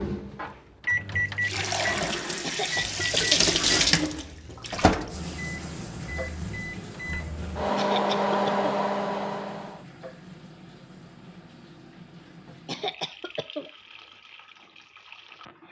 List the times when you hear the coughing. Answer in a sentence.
You can hear the coughing from 2.4 to 3.2 s, from 7.8 to 8.7 s and from 12.7 to 13.7 s.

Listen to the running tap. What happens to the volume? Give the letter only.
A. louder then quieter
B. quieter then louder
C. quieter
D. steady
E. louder
C.